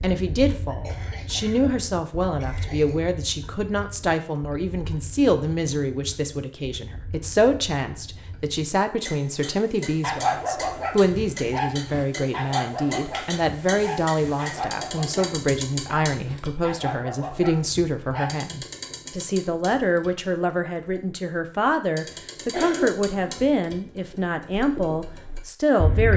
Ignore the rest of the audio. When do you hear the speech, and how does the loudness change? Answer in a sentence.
The speech can be heard from 0.0 to 26.1 s, at a steady volume.